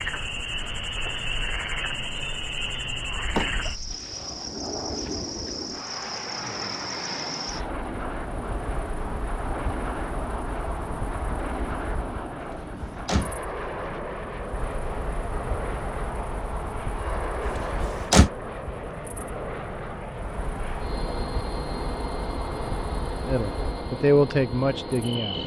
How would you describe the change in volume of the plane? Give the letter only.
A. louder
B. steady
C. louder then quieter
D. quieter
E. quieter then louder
B.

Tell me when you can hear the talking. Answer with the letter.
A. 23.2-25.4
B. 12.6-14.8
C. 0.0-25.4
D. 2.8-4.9
A.